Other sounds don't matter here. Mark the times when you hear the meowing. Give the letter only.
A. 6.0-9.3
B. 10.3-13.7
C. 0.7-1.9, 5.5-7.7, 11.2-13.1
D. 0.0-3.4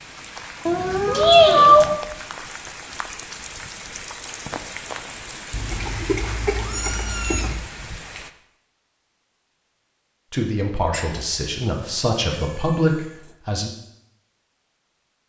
C.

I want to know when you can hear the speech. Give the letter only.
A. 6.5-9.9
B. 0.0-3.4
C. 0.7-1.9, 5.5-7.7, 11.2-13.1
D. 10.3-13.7
D.